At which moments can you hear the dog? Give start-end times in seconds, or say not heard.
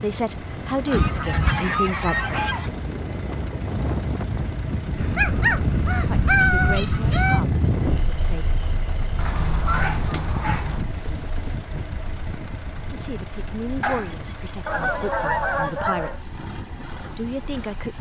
0.9-2.5, 5.2-7.4, 9.2-11.6, 13.8-15.7.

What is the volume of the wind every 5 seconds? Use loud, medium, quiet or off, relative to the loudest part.
medium, loud, medium, quiet.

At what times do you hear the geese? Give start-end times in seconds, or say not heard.
0.8-2.7, 5.0-7.4, 9.2-10.8, 14.7-16.2.